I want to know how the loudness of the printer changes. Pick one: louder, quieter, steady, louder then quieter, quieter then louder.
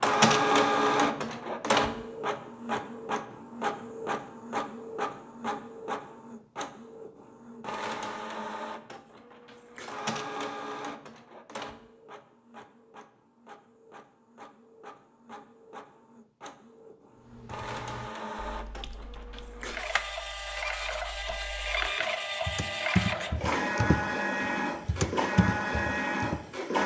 quieter then louder.